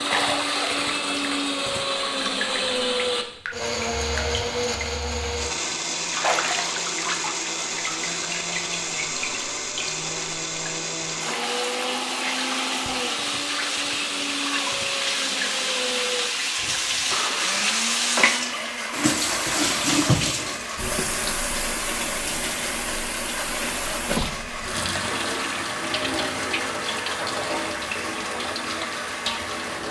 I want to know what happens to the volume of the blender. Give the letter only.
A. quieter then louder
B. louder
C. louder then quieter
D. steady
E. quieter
E.